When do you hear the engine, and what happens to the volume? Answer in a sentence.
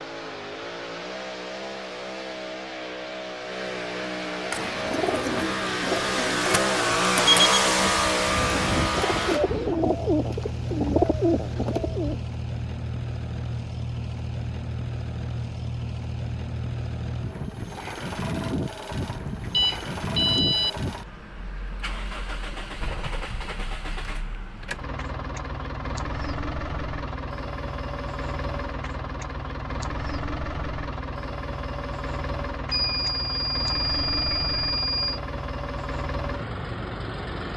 You can hear the engine from 0.0 to 37.5 s, getting quieter.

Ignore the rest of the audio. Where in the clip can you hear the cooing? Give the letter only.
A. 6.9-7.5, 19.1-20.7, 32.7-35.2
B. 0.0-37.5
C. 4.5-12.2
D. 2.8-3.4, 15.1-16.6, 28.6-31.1
C.